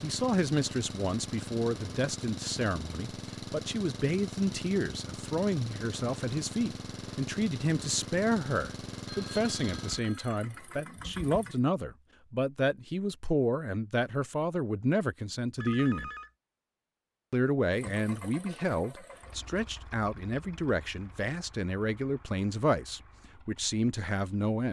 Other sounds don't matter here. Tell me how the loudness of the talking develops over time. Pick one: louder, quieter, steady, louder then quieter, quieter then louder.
steady.